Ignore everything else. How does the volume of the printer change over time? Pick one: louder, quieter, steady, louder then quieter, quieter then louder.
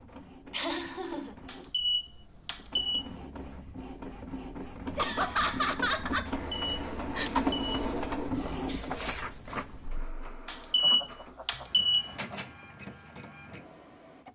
louder then quieter.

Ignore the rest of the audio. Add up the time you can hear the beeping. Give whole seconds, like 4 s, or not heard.
5 s.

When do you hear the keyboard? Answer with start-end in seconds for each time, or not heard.
not heard.